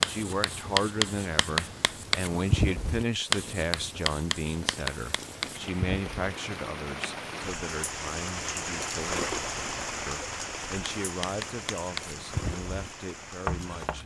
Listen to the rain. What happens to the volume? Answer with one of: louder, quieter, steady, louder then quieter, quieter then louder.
louder then quieter.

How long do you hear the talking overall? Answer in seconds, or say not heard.
14 s.